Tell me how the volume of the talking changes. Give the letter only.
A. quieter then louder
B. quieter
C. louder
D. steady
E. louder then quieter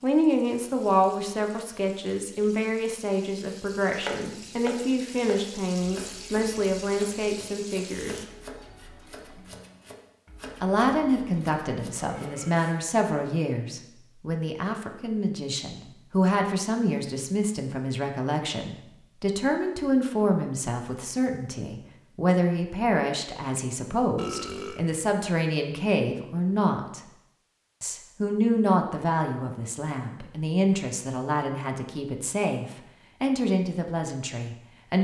D.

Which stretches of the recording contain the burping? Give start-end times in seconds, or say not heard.
11.9-12.7, 24.1-24.9.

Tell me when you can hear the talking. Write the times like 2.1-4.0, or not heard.
0.0-8.2, 10.6-27.0, 27.8-35.0.